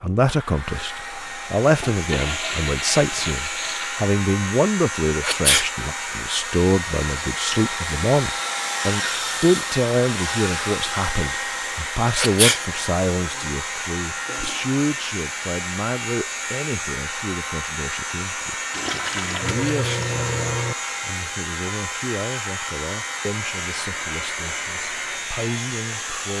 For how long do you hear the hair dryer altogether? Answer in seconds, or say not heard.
26 s.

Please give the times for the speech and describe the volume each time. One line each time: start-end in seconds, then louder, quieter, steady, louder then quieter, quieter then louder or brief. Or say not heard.
0.0-26.3 quieter.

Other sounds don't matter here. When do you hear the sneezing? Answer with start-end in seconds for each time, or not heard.
5.2-5.7, 12.2-12.6, 19.6-20.1.